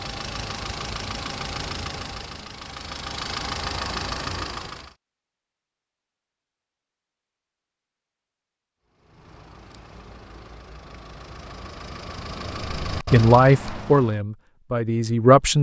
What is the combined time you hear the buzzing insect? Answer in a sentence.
You can't hear the buzzing insect here.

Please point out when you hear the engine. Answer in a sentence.
The engine can be heard from 0.0 to 5.0 s and from 8.8 to 14.2 s.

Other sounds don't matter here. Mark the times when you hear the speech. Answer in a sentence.
You can hear the speech from 12.9 to 15.5 s.